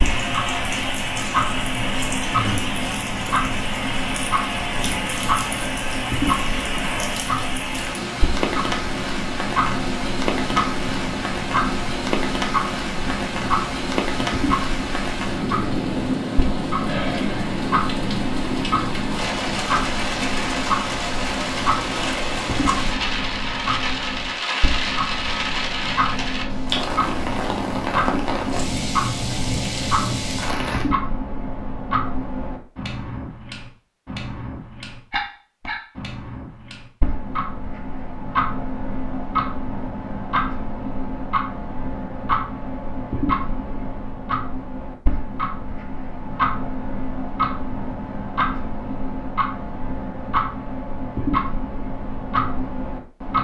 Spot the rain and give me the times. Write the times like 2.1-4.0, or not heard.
0.0-30.9.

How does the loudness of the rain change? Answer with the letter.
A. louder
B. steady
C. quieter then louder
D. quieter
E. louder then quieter
B.